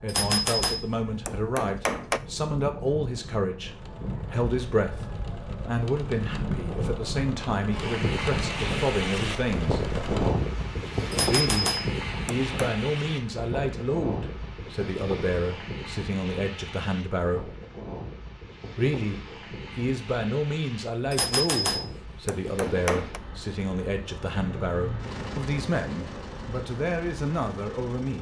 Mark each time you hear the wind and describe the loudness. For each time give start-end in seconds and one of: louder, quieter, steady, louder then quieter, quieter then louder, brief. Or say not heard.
0.1-28.1 louder then quieter.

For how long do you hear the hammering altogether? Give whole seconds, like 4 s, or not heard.
6 s.